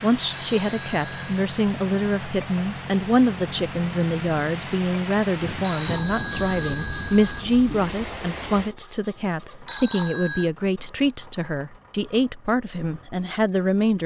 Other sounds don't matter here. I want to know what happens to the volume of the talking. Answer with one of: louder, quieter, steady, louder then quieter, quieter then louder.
steady.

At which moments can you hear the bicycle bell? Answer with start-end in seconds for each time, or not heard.
0.3-1.3, 5.6-7.4, 9.7-10.5.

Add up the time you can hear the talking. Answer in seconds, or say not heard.
14 s.